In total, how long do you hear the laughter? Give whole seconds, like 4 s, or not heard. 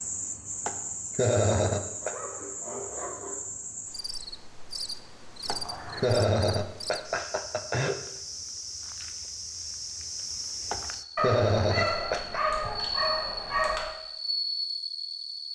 6 s.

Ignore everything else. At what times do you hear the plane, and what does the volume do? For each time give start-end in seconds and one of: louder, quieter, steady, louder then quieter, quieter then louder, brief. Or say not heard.
not heard.